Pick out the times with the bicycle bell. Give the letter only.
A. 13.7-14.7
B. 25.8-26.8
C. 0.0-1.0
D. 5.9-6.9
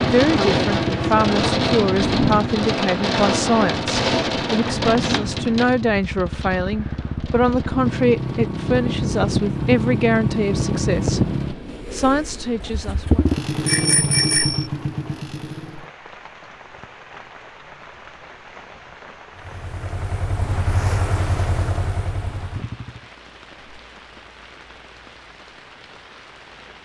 A.